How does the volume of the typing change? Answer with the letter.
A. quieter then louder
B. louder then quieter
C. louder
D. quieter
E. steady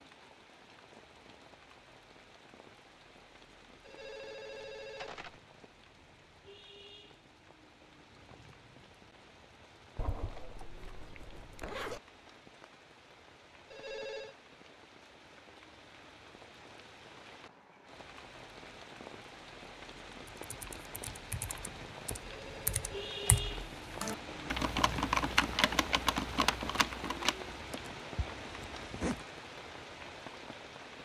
C.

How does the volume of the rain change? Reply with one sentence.
The volume of the rain goes up.